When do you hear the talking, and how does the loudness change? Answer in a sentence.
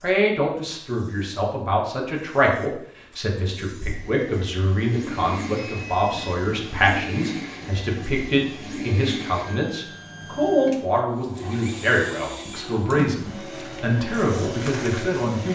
The talking can be heard from 0.0 to 15.5 s, at a steady volume.